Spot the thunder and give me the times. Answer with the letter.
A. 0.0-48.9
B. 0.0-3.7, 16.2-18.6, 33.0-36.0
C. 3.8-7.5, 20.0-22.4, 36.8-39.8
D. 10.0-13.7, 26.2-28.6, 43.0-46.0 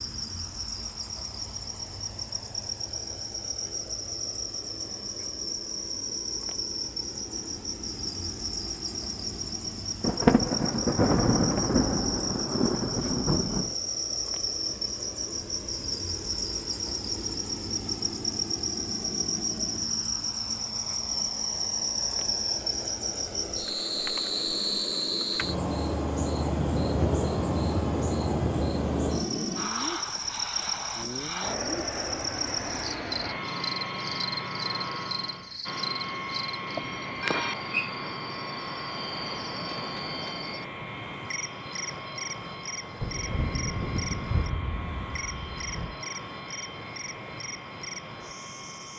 D.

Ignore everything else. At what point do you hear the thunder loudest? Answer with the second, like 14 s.
10 s.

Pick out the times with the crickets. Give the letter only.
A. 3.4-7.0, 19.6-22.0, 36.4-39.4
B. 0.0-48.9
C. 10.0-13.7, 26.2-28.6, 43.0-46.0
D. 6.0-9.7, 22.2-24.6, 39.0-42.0
B.